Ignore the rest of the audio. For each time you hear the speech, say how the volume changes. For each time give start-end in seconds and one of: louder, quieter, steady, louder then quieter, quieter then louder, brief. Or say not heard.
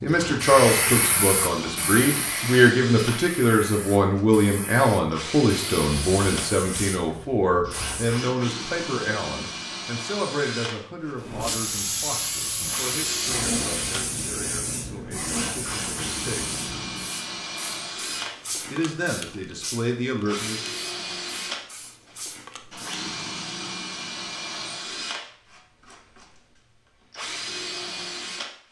0.0-16.6 quieter
18.7-20.6 brief.